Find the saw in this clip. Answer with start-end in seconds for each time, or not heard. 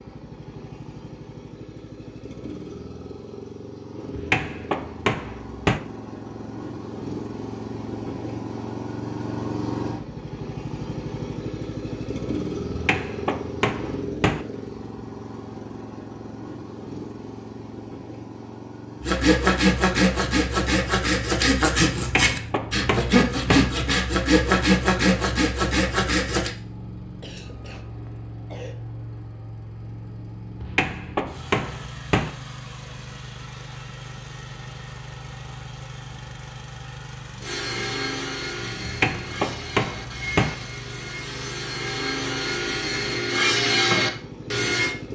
19.0-26.5, 37.4-45.0.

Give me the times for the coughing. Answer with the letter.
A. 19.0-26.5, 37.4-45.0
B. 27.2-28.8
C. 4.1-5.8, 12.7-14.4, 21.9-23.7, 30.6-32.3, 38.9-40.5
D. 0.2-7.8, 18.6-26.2
B.